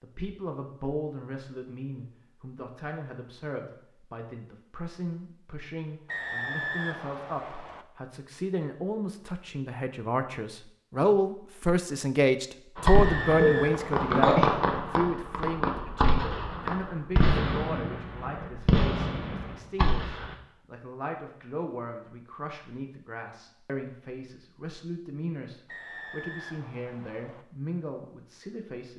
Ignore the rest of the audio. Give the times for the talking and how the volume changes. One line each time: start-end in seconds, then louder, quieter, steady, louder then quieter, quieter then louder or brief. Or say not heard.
0.0-28.9 louder then quieter.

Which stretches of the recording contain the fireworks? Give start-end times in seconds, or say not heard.
12.8-20.4.